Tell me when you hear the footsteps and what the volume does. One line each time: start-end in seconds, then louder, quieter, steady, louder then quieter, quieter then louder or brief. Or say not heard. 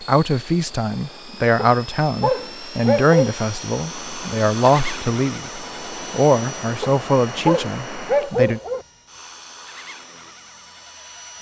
not heard.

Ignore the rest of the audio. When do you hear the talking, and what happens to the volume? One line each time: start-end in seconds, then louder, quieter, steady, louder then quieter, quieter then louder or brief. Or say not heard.
0.0-8.6 steady.